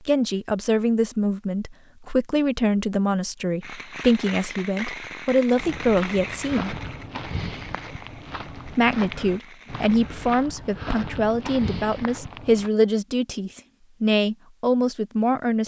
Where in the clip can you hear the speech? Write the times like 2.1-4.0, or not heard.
0.1-6.8, 8.8-15.6.